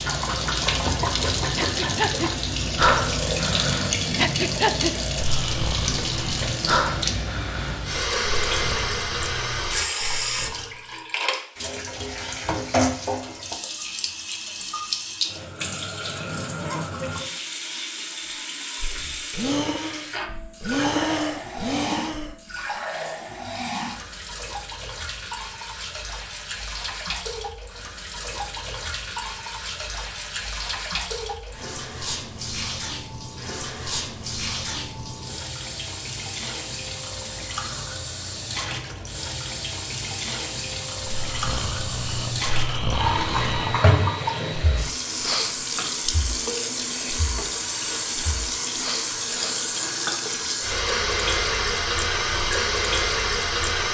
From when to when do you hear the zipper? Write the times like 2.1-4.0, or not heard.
16.5-16.9.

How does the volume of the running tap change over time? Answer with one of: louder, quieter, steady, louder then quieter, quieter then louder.
quieter then louder.